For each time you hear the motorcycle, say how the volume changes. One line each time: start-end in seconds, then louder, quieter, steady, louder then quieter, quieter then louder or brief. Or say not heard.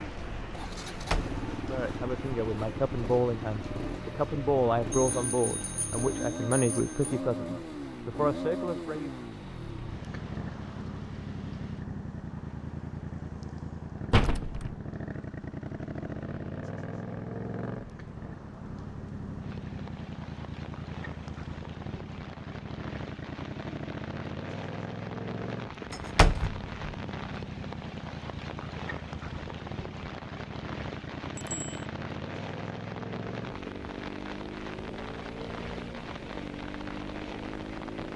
0.0-38.1 steady.